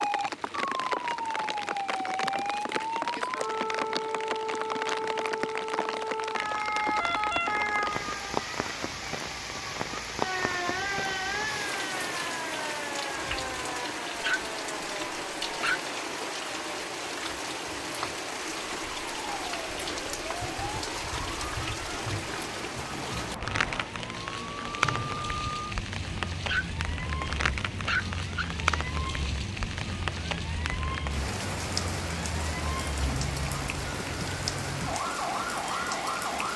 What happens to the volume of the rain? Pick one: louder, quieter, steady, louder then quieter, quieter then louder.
steady.